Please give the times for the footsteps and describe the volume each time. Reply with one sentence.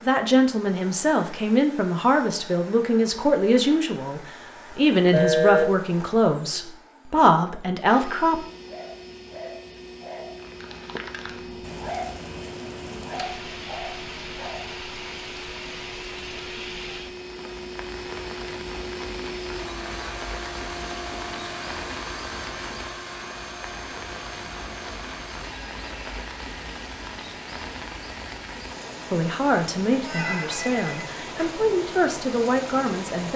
The footsteps can't be heard in this clip.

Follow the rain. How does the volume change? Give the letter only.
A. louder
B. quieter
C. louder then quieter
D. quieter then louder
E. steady
E.